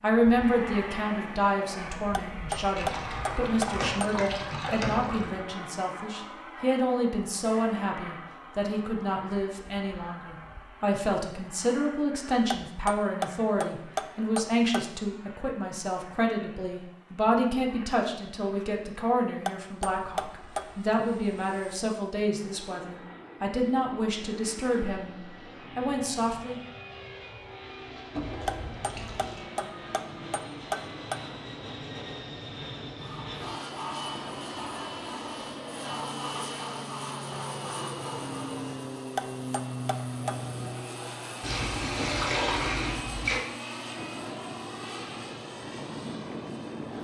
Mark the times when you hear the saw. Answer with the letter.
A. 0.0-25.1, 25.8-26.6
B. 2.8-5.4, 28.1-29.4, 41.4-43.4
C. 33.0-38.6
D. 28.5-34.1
C.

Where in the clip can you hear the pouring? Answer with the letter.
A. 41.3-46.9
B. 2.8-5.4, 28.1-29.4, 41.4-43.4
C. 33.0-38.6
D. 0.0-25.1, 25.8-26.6
B.